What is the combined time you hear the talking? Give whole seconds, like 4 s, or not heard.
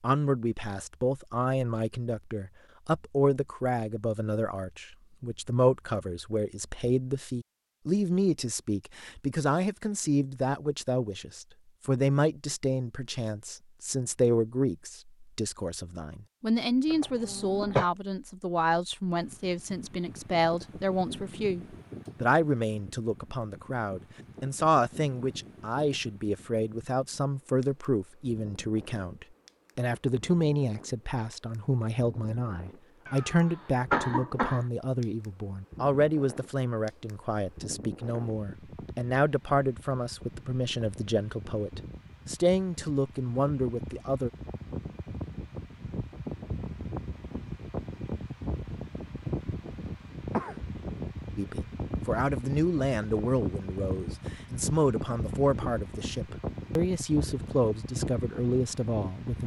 52 s.